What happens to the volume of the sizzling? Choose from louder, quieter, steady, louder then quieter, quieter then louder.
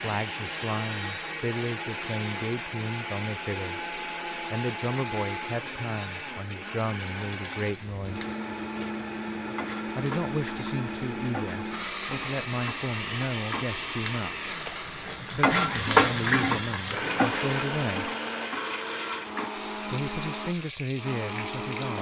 louder then quieter.